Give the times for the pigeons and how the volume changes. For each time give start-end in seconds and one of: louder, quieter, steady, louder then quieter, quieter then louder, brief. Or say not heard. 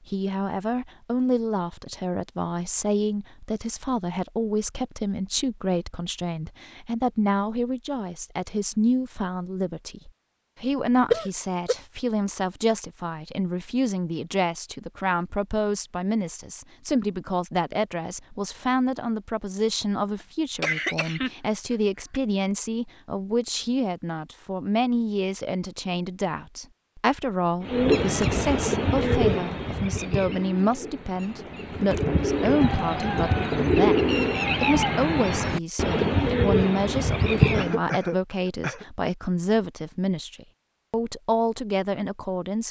27.6-37.8 quieter then louder.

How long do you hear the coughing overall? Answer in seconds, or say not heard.
4 s.